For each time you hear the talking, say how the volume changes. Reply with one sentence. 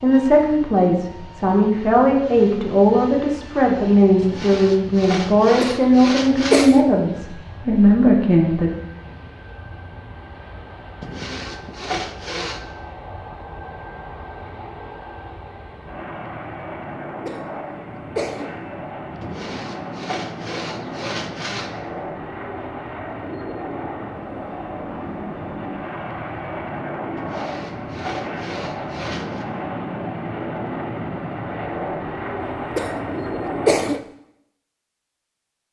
You can hear the talking from 0.0 to 8.7 s, at a steady volume.